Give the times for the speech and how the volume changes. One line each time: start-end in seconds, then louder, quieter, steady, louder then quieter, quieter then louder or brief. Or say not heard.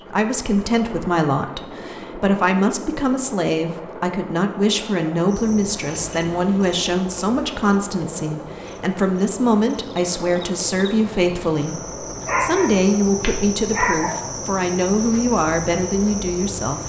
0.1-16.8 steady.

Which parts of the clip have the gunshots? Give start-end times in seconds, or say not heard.
not heard.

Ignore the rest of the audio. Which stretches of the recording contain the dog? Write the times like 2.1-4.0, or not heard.
12.2-14.2.